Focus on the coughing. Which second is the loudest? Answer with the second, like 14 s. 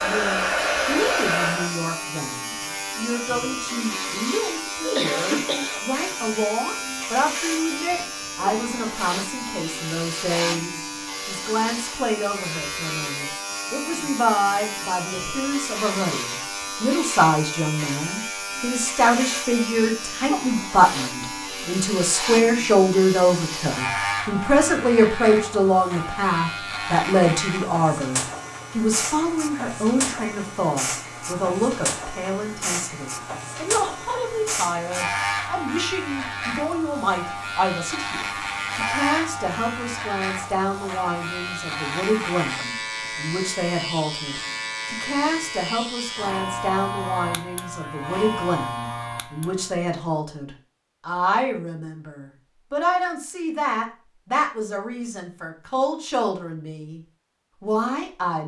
5 s.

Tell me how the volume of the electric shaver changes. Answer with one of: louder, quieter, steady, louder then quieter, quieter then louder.
steady.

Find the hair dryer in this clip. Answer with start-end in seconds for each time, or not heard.
0.0-1.8.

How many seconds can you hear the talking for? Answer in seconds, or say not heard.
58 s.